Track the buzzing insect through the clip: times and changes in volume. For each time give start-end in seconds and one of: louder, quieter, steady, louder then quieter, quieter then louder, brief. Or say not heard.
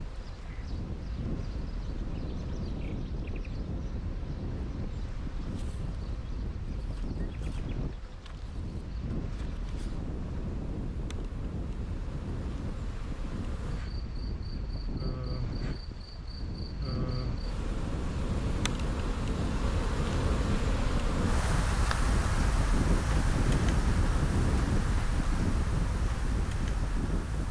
0.0-27.4 louder.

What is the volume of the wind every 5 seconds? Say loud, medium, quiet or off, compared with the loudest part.
medium, medium, medium, medium, loud, loud.